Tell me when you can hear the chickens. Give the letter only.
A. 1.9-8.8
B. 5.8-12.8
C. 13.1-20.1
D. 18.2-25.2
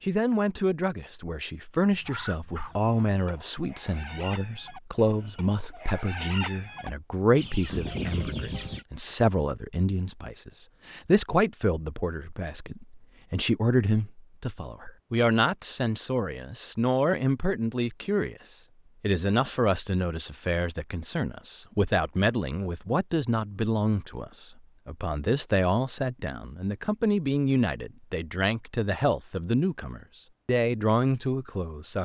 A.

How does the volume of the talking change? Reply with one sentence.
The loudness of the talking stays about the same.